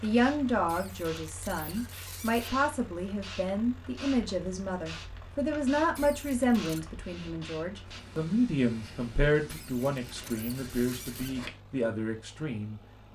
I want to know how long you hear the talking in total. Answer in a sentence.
You can hear the talking for 13 seconds altogether.